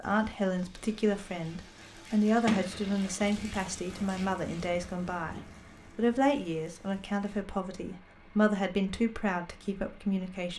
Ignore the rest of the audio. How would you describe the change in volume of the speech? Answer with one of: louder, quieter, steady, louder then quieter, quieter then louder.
steady.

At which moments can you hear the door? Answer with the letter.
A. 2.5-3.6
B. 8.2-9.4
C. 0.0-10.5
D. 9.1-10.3
A.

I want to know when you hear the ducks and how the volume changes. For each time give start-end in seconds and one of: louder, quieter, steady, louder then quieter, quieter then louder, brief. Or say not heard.
not heard.